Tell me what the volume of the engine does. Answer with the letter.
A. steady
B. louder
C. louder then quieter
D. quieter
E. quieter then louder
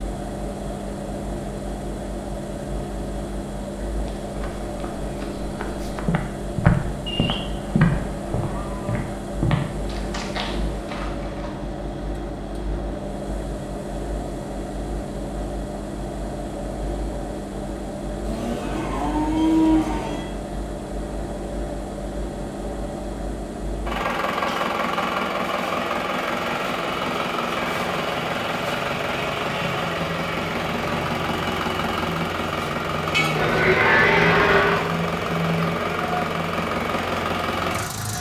B.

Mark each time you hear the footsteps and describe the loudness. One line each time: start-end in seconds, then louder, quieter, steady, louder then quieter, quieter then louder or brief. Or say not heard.
4.0-11.6 louder then quieter.